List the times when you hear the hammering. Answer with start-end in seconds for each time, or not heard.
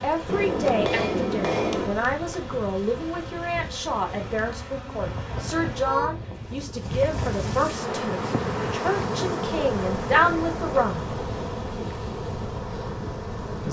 0.2-1.9.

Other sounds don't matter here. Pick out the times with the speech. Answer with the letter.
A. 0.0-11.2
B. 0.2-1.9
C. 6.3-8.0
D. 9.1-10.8
A.